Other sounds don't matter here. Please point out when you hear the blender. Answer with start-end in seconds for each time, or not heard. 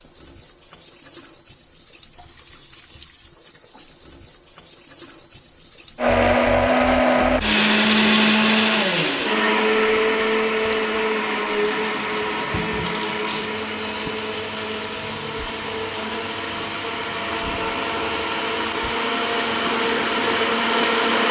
6.0-21.2.